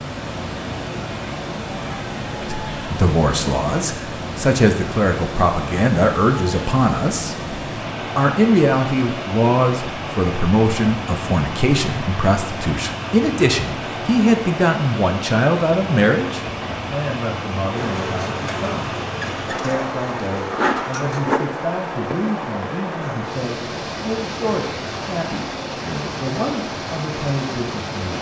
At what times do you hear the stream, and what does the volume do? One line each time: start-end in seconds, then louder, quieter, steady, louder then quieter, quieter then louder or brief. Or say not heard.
0.0-28.1 steady.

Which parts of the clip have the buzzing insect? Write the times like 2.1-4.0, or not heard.
17.8-21.4.